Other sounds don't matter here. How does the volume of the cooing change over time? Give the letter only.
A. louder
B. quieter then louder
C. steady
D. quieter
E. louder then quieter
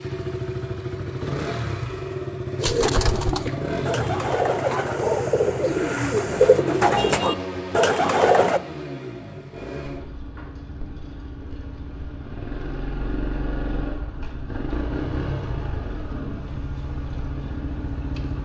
A.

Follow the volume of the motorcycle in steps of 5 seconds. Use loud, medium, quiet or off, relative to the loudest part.
loud, loud, medium, loud.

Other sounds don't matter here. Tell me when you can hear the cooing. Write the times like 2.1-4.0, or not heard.
2.6-8.6.